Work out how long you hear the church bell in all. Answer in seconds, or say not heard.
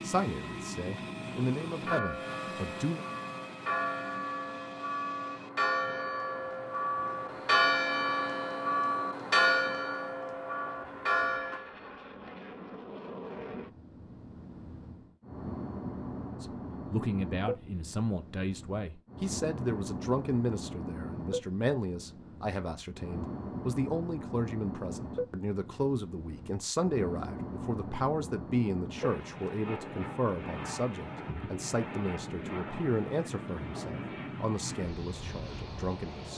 10 s.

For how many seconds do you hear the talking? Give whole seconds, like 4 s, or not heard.
23 s.